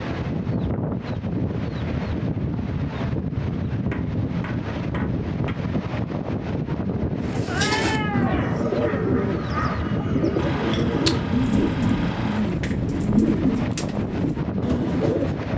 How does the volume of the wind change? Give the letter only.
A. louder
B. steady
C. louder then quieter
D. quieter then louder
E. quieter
B.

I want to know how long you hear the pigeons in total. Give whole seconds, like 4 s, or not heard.
8 s.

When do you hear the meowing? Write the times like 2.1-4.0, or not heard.
7.5-8.4.